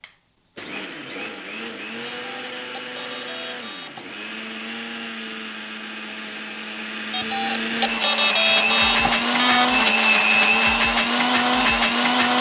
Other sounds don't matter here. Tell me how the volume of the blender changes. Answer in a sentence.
The volume of the blender goes up.